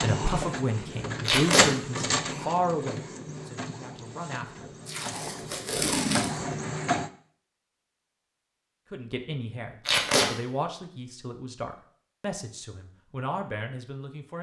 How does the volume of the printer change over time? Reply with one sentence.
The loudness of the printer goes down, then up.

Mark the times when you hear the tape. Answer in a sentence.
You can hear the tape from 1.2 to 1.7 s, from 4.8 to 6.5 s and from 9.8 to 10.3 s.